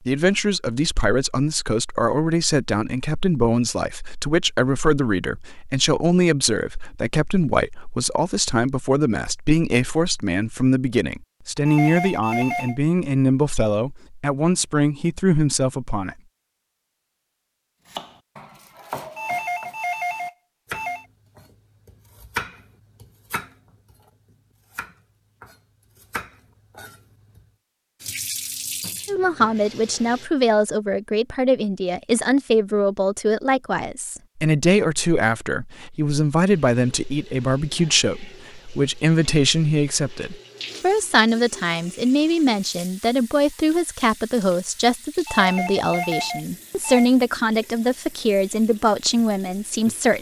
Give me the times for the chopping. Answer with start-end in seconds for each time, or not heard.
17.9-27.4.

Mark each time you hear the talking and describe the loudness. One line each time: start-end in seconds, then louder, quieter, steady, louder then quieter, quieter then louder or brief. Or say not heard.
0.1-16.1 steady
29.1-50.1 steady.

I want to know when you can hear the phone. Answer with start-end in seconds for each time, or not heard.
11.7-12.8, 19.1-21.1, 45.2-47.1.